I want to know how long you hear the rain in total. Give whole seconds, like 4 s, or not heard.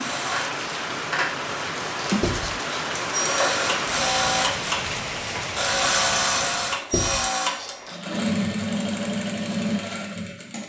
7 s.